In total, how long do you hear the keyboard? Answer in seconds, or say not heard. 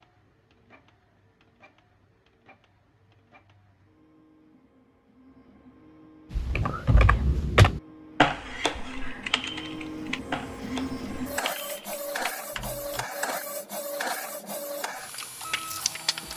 7 s.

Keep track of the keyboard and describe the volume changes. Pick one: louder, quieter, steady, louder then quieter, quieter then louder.
quieter.